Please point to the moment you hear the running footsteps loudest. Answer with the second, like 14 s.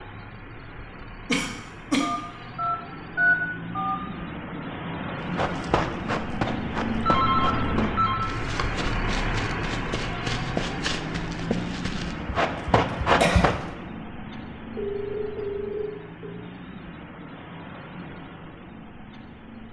13 s.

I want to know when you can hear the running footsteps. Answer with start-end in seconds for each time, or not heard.
5.2-13.7.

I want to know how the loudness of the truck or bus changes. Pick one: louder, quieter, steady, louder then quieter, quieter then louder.
louder then quieter.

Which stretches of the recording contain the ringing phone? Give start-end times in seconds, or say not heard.
2.0-4.0, 7.0-8.2, 14.8-16.4.